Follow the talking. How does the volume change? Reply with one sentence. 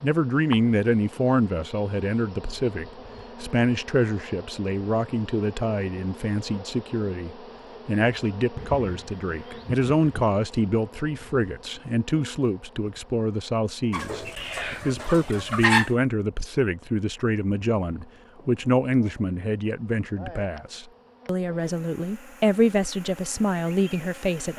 The volume of the talking stays about the same.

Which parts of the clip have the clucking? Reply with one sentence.
The clucking can be heard from 8.6 to 10.3 s and from 13.9 to 15.9 s.